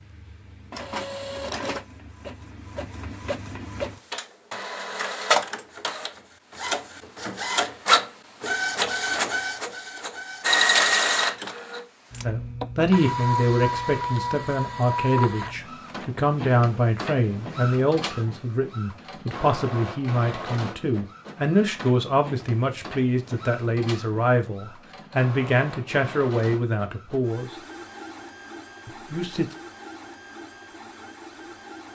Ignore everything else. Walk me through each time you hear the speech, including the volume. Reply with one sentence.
The speech can be heard from 12.2 to 27.5 s, at a steady volume; and briefly from 28.9 to 29.4 s.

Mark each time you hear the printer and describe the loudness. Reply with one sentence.
You can hear the printer from 0.0 to 31.9 s, getting louder then quieter.